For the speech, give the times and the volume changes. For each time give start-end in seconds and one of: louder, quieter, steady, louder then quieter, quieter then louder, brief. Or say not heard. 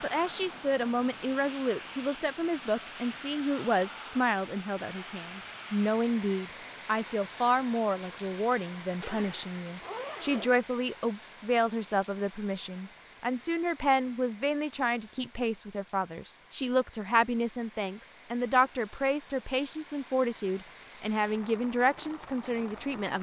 0.0-23.1 steady.